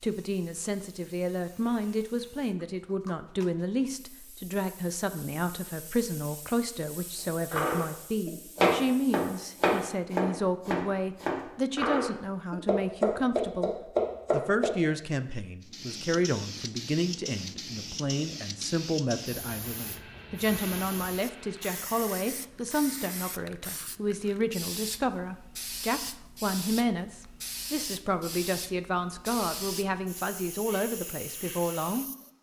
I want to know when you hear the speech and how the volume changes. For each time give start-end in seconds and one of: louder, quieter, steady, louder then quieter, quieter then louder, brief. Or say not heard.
0.0-32.0 steady.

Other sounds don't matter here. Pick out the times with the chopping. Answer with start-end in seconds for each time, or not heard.
7.5-14.8.